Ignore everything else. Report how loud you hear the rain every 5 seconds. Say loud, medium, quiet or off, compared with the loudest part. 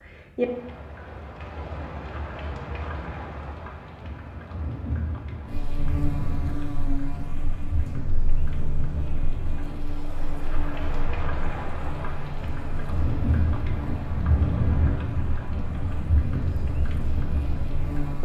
loud, medium, loud, loud.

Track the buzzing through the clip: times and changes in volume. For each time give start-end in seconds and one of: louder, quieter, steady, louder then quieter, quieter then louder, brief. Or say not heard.
5.5-18.1 quieter.